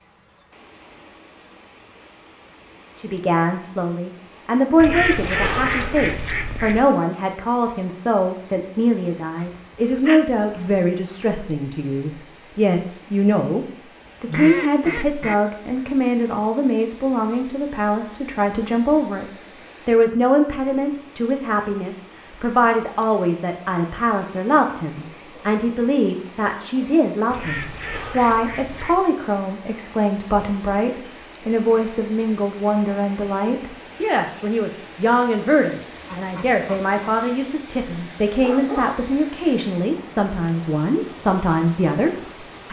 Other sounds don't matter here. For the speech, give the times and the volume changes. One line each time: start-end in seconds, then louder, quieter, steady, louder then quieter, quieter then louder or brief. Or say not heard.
3.0-42.6 steady.